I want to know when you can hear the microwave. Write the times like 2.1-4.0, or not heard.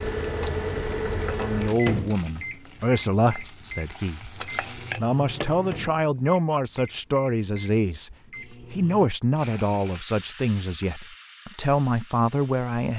0.0-9.1.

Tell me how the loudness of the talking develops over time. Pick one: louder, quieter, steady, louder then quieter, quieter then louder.
steady.